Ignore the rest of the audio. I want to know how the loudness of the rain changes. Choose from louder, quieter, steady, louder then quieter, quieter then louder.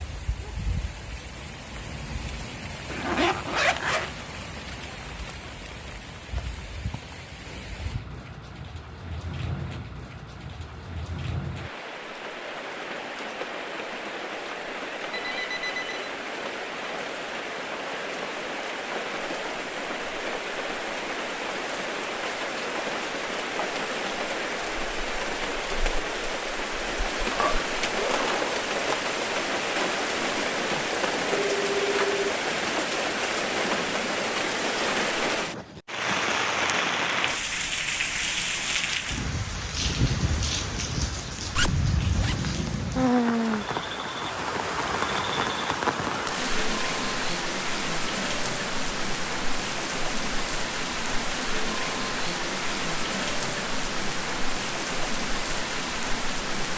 louder.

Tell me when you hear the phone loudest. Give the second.
32 s.